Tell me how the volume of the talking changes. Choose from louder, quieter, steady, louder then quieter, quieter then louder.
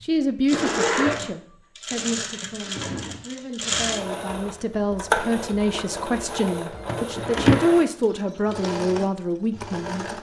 quieter then louder.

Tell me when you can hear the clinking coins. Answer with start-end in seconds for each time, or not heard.
not heard.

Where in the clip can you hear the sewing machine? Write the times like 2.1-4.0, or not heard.
0.0-10.1.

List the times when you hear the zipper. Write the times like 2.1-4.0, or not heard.
0.5-1.3, 7.2-8.0.